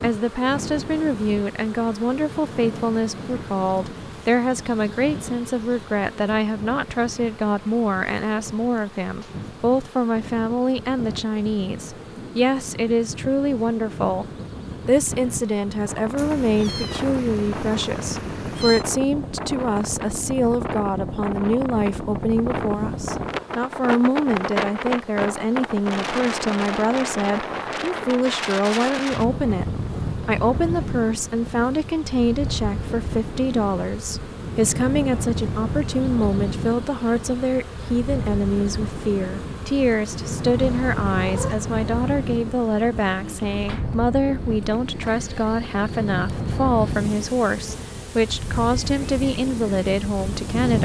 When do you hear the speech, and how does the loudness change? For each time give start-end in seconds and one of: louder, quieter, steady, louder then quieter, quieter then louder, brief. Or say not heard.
0.0-14.2 steady
14.8-50.8 steady.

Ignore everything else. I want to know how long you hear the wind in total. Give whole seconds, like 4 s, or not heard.
51 s.